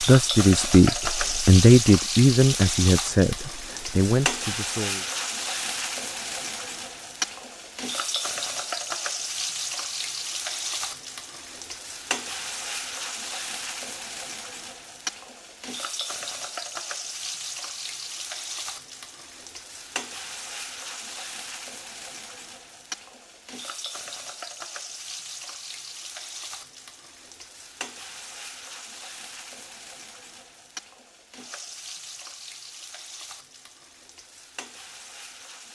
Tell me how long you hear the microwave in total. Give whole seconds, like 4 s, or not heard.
not heard.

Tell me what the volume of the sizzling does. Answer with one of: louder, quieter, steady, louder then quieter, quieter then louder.
quieter.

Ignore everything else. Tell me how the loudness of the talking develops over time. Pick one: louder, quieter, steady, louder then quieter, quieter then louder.
quieter.